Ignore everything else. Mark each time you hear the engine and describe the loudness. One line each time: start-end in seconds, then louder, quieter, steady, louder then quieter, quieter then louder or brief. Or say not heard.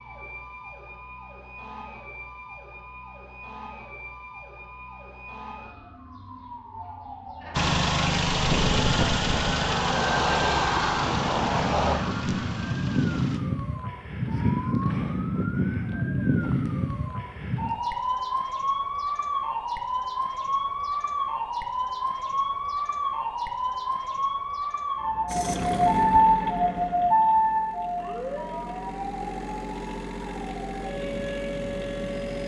7.5-13.4 quieter
25.2-32.4 quieter then louder.